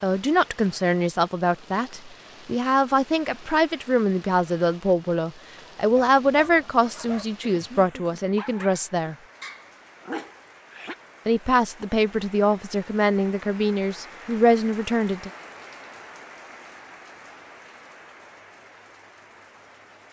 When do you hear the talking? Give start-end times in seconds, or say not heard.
0.0-9.2, 11.2-15.3.